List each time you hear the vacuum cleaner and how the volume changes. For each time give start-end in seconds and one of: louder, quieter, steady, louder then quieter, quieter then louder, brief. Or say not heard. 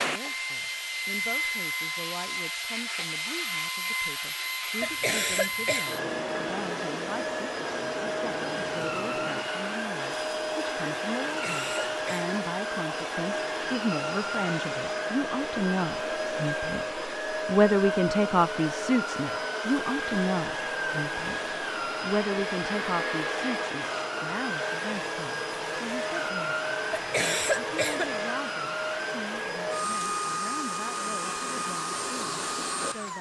0.0-33.1 steady.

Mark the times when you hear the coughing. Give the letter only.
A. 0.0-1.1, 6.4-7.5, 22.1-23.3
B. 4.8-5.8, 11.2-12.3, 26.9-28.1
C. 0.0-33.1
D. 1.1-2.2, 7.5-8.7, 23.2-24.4
B.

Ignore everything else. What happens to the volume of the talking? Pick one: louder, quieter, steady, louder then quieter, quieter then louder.
louder then quieter.